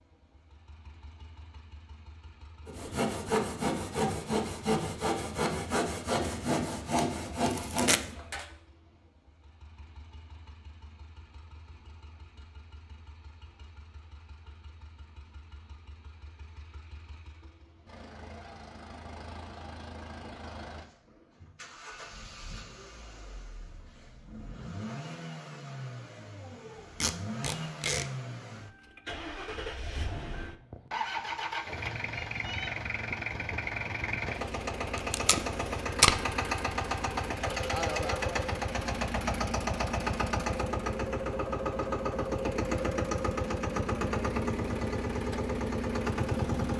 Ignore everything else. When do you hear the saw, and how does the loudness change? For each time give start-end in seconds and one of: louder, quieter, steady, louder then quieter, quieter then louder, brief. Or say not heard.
2.6-8.4 steady.